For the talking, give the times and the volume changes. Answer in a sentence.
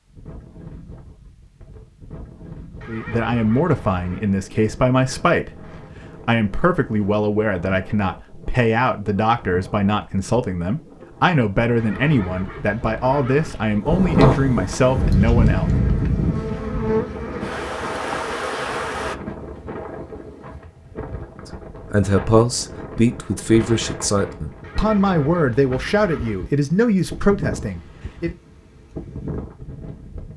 You can hear the talking from 2.9 to 15.7 s, at a steady volume; and from 21.9 to 28.4 s, at a steady volume.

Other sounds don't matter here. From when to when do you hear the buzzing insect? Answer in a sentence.
The buzzing insect can be heard from 14.8 to 19.1 s.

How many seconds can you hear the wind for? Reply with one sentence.
The wind can be heard for 30 seconds in total.